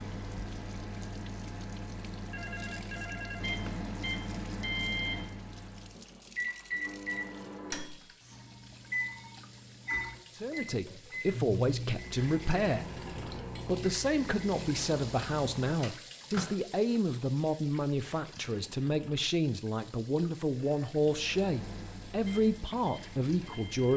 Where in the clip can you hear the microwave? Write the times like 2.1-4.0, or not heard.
0.0-16.6, 21.0-23.9.